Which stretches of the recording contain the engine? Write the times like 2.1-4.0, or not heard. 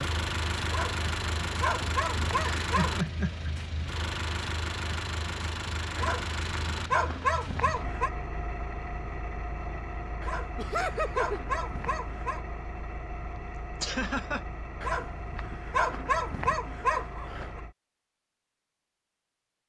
0.0-17.8.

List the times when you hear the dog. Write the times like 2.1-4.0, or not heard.
0.7-3.0, 6.0-8.1, 10.2-12.4, 14.8-17.6.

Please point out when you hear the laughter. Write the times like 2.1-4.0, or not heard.
2.6-3.5, 10.6-11.4, 13.3-14.4.